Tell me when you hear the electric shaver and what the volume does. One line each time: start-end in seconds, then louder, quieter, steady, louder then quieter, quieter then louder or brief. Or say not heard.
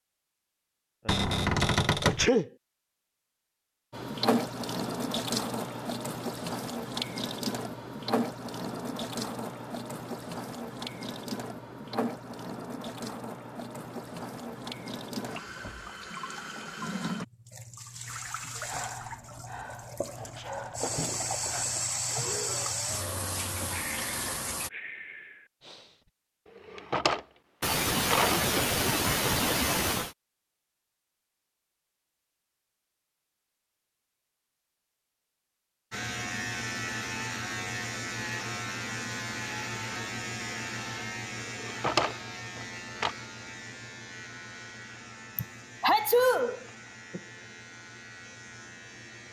35.9-49.2 quieter.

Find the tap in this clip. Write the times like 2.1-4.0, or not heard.
3.9-24.7.